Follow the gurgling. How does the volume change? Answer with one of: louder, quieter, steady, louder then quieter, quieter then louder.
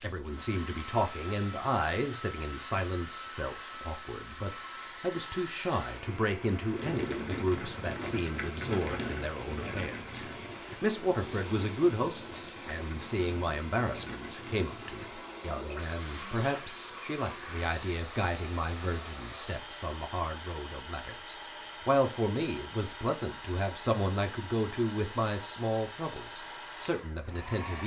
quieter.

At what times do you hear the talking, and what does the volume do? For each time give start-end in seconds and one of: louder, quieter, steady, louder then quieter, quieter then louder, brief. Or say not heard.
0.0-27.8 steady.